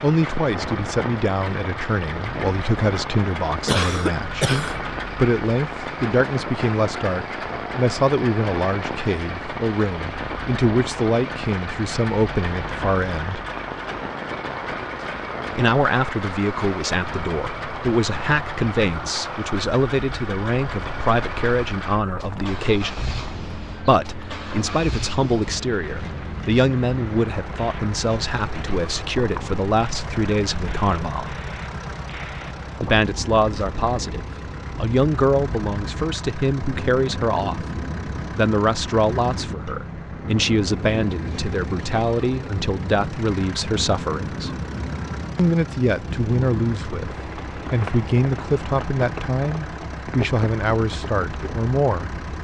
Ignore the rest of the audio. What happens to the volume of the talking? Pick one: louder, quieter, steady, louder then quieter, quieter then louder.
steady.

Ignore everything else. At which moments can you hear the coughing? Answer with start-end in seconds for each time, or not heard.
3.6-4.8.